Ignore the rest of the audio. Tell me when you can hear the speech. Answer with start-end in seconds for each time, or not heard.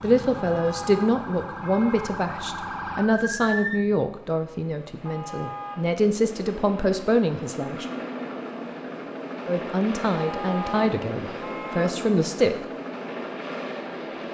0.0-7.8, 9.4-12.7.